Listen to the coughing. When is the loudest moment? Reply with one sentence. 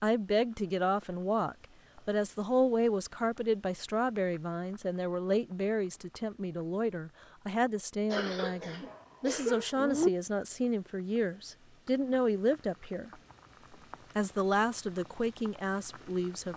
The volume of the coughing peaks at 10 seconds.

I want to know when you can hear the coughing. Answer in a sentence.
The coughing can be heard from 8.1 to 10.1 s.